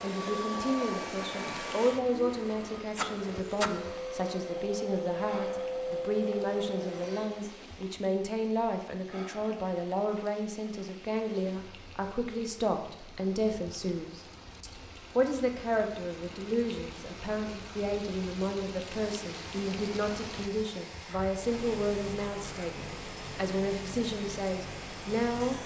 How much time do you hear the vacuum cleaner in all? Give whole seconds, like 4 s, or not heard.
14 s.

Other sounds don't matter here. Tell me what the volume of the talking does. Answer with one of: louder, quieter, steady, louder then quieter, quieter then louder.
steady.